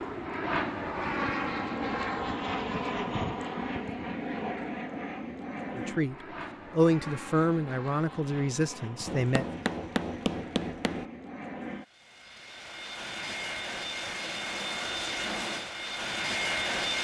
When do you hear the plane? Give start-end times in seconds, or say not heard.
0.0-17.0.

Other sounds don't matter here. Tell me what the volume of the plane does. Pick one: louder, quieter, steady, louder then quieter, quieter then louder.
quieter then louder.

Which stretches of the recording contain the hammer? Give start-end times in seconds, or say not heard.
9.1-11.1.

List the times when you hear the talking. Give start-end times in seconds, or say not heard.
5.8-9.4.